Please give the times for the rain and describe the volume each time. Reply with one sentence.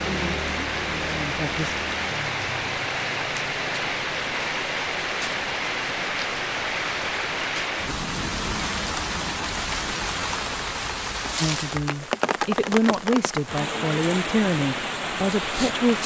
You can hear the rain from 0.0 to 16.0 s, at a steady volume.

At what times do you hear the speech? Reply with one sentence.
You can hear the speech from 0.1 to 1.8 s and from 11.4 to 16.0 s.